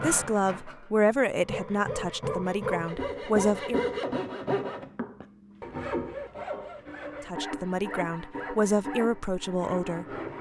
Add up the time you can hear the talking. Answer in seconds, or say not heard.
7 s.